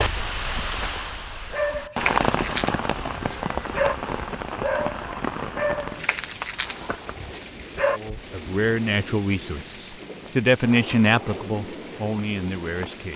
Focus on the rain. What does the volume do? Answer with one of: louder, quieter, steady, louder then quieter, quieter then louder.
quieter.